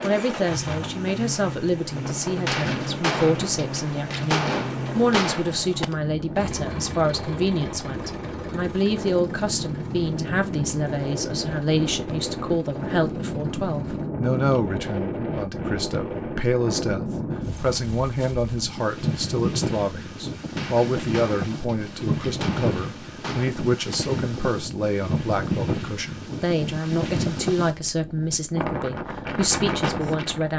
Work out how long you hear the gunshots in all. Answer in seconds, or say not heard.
7 s.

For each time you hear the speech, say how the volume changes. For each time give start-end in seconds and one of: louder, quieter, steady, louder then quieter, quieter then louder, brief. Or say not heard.
0.0-30.5 steady.